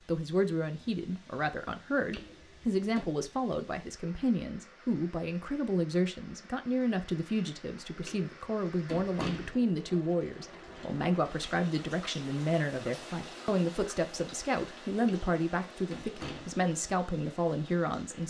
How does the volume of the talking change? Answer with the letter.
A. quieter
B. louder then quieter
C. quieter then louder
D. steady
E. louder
D.